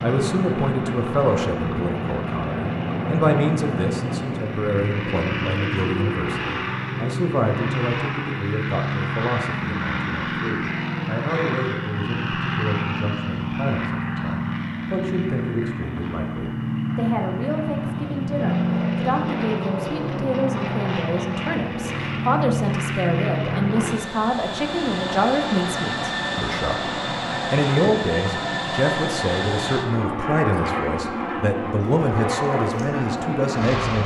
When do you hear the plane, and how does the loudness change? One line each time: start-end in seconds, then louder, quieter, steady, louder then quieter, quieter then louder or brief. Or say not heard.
0.0-34.0 steady.